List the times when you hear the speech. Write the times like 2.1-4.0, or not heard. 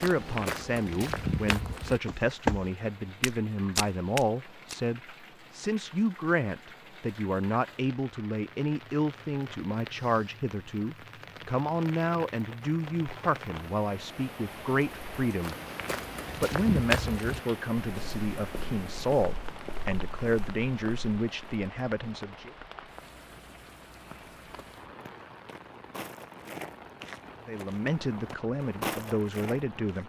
0.0-15.6, 16.4-22.5, 27.4-30.0.